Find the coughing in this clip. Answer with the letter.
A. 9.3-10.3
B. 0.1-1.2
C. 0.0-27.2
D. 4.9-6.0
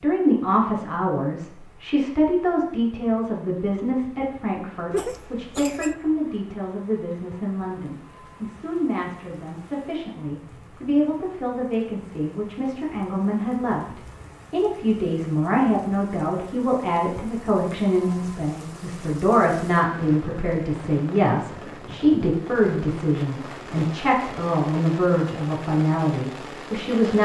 D.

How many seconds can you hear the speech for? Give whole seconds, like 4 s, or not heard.
27 s.